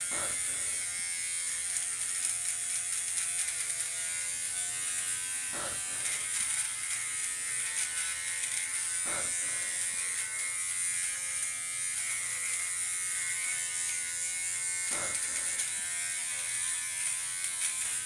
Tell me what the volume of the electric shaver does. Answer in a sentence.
The loudness of the electric shaver stays about the same.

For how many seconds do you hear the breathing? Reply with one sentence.
The breathing can be heard for 4 seconds in total.